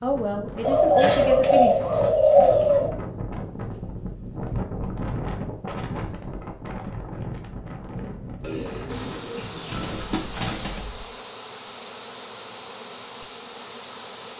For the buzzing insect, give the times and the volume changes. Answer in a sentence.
The buzzing insect can be heard from 8.8 to 14.3 s, at a steady volume.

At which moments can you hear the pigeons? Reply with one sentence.
You can hear the pigeons from 0.7 to 3.0 s and from 8.4 to 10.8 s.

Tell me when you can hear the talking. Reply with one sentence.
You can hear the talking from 0.0 to 1.8 s.